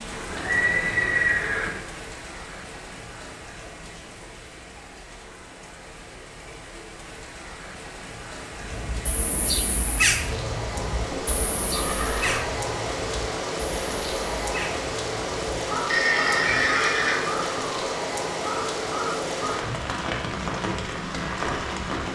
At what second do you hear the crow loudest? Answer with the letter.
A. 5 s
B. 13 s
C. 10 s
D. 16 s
C.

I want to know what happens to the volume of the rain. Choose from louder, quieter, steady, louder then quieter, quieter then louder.
louder.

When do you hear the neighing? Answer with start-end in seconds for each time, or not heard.
0.3-1.7, 10.9-12.4, 15.8-17.5.